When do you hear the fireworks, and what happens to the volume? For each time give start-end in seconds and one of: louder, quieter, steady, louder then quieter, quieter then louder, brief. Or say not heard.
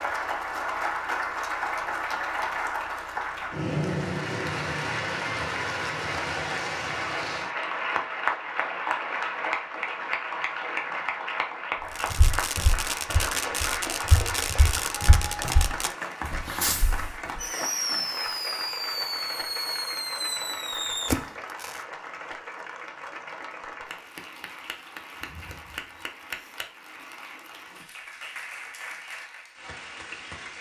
11.9-21.9 steady.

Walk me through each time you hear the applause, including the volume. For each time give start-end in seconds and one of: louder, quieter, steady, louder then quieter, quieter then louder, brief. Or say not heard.
0.0-30.5 quieter.